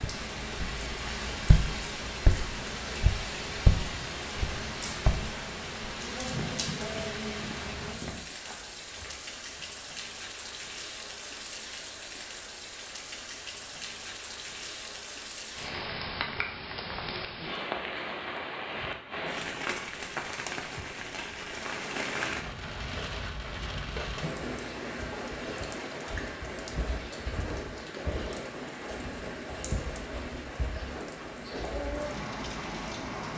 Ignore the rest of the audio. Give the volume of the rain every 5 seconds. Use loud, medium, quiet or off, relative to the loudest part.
loud, loud, medium, loud, loud, loud, loud.